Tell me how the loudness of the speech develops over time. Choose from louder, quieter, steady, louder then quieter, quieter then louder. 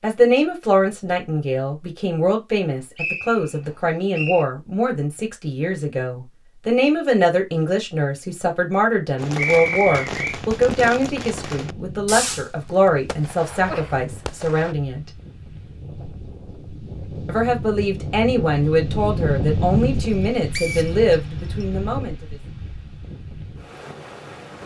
steady.